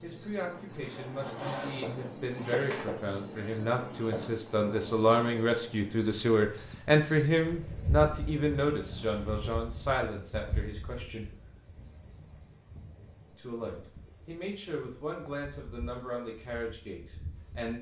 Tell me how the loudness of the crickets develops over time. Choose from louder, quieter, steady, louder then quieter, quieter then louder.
quieter.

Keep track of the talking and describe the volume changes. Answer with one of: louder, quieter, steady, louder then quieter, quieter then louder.
louder then quieter.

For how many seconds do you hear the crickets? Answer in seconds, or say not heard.
18 s.